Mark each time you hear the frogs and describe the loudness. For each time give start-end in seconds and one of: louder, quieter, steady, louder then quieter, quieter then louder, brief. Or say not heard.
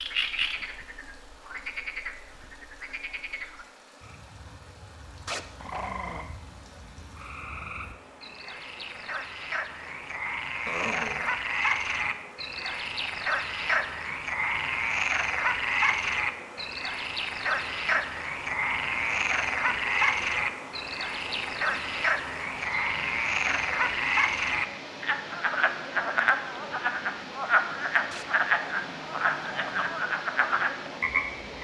0.0-31.5 louder.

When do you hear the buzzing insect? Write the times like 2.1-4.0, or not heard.
not heard.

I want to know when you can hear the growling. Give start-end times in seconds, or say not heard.
5.2-6.2, 10.7-11.3, 28.1-30.0.